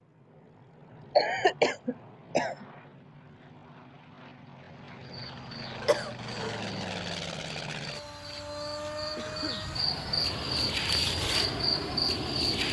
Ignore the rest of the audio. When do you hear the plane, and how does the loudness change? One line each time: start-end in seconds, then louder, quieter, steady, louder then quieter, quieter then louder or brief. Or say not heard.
0.0-12.6 louder.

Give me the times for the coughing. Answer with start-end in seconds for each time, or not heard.
1.1-2.6, 5.8-6.6, 9.2-9.7.